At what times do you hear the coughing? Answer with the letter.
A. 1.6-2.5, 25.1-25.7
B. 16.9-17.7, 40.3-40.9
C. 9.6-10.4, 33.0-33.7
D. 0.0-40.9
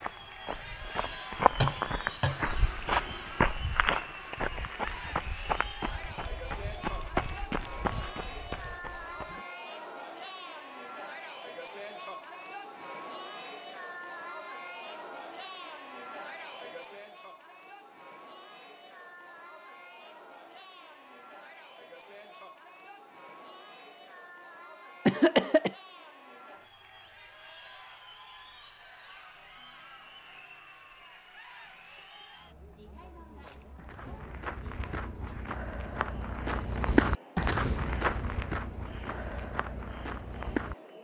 A.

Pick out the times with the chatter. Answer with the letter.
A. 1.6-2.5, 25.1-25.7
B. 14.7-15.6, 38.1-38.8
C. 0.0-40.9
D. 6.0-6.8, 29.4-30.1
C.